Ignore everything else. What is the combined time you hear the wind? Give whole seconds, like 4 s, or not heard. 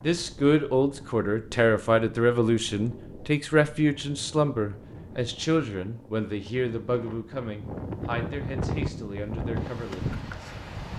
11 s.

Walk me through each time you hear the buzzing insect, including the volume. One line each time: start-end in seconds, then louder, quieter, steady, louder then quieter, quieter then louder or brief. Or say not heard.
not heard.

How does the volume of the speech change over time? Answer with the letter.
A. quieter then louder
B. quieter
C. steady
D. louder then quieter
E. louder
B.